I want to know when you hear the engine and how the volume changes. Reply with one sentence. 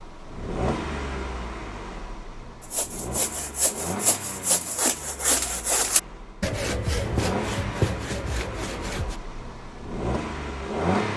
You can hear the engine from 0.0 to 11.1 s, getting quieter then louder.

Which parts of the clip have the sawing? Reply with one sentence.
You can hear the sawing from 2.6 to 9.2 s.